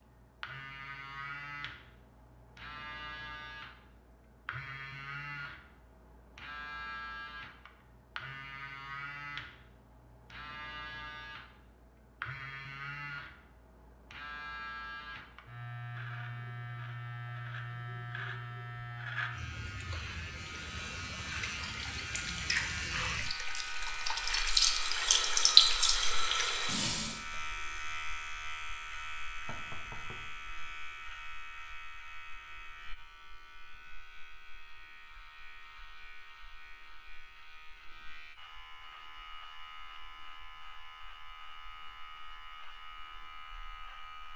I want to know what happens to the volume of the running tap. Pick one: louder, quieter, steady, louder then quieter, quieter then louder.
louder then quieter.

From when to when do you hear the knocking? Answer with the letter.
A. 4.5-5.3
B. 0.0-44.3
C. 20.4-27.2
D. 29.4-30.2
D.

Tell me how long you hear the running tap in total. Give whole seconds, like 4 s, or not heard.
7 s.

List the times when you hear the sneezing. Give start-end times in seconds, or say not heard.
not heard.